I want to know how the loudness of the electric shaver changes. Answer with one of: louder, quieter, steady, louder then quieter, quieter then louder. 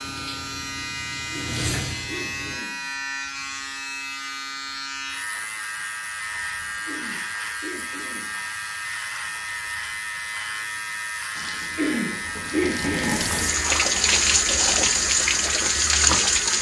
steady.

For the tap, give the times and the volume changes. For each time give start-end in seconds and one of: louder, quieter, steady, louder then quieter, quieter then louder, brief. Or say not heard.
0.0-2.6 brief
11.3-16.5 louder.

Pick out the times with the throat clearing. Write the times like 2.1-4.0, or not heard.
1.3-2.9, 6.8-8.4, 11.8-13.3.